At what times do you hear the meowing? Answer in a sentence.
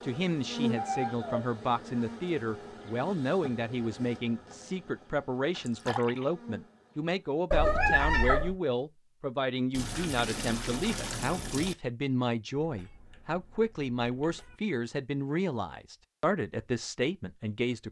The meowing can be heard from 0.8 to 1.5 s, from 7.5 to 8.6 s and from 12.6 to 14.6 s.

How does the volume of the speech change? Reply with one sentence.
The volume of the speech stays about the same.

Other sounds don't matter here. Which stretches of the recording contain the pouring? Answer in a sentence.
The pouring can be heard from 5.7 to 6.3 s and from 9.7 to 11.8 s.